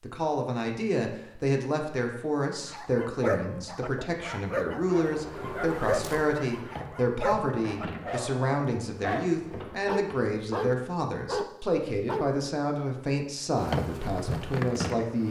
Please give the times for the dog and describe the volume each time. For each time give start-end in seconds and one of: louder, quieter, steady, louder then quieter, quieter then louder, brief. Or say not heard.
2.6-12.4 steady.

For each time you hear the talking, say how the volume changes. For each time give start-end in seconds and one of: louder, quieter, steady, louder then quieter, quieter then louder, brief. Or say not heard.
0.0-15.2 steady.